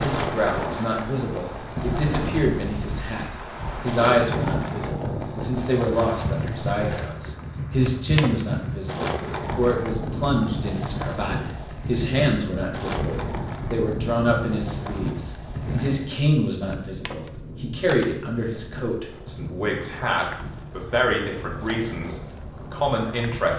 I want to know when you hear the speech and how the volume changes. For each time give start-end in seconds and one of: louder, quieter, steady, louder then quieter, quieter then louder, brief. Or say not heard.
0.0-23.5 steady.